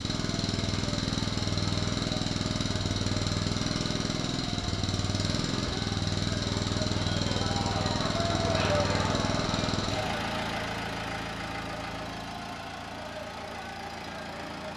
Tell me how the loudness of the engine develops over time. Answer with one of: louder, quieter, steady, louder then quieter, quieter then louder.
quieter.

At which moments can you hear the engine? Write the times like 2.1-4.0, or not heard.
0.0-14.7.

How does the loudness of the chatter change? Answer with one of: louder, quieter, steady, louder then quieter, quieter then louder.
louder then quieter.